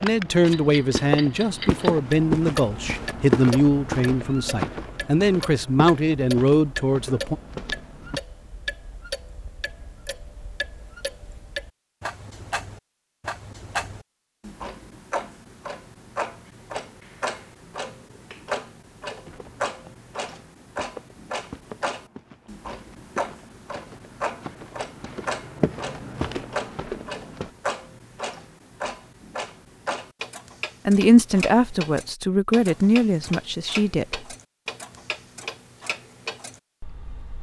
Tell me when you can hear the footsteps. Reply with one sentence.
The footsteps can be heard from 0.0 to 8.2 s and from 19.2 to 27.5 s.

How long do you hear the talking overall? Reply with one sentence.
The talking can be heard for 11 seconds in total.